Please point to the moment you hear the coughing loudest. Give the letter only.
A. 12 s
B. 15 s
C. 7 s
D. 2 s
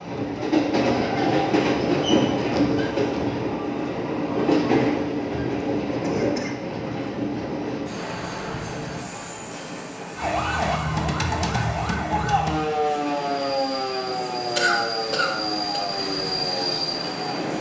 B.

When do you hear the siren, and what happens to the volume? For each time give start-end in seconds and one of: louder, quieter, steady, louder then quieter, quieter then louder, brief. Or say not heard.
10.2-17.5 quieter.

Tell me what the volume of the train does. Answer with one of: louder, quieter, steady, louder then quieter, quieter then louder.
quieter then louder.